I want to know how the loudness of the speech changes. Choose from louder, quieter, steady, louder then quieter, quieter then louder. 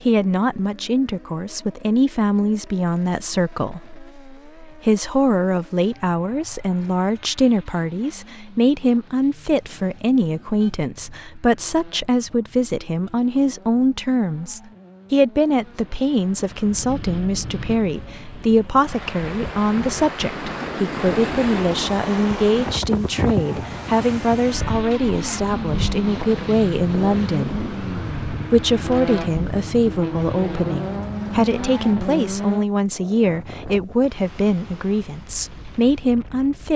steady.